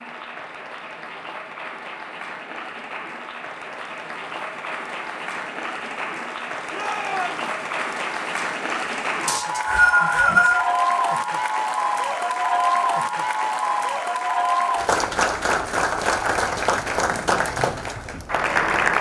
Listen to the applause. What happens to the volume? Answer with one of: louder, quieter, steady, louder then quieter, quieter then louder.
louder.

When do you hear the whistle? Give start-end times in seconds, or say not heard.
9.2-10.7.